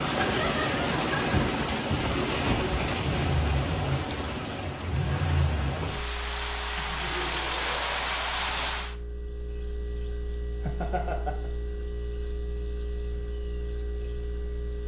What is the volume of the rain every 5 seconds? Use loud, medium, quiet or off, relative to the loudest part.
loud, loud, off.